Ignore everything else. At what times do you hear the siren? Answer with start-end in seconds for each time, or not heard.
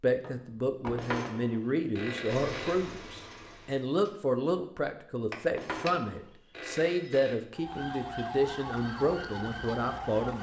7.5-10.3.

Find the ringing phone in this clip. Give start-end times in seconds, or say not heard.
0.9-2.8, 5.5-7.3.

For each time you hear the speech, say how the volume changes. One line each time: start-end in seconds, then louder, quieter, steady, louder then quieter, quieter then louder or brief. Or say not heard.
0.0-10.3 steady.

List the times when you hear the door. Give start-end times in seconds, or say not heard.
0.2-1.1, 5.3-6.0.